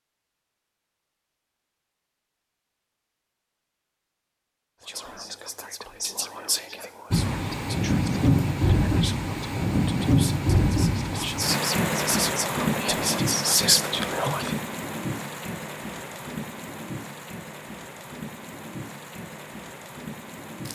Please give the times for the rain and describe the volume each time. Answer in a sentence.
You can hear the rain from 7.1 to 20.7 s, getting quieter.